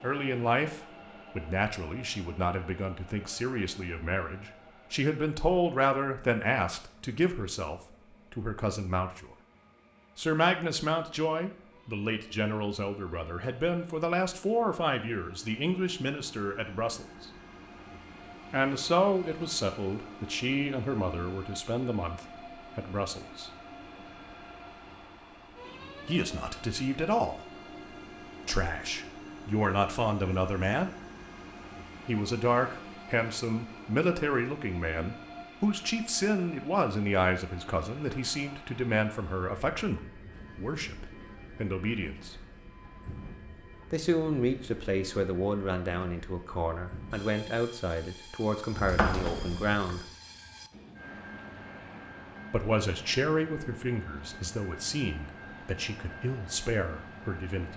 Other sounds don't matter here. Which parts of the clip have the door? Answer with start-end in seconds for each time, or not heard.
48.7-50.0.